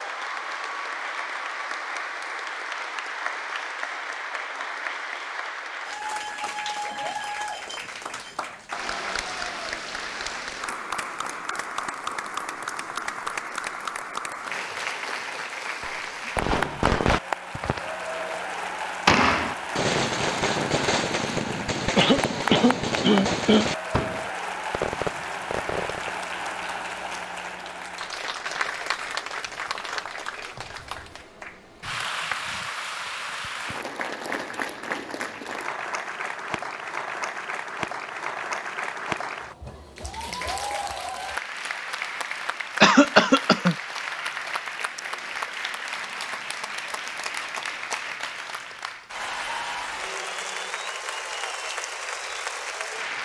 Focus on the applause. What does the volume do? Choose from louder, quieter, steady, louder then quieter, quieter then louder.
steady.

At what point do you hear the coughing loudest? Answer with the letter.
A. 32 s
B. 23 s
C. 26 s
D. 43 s
D.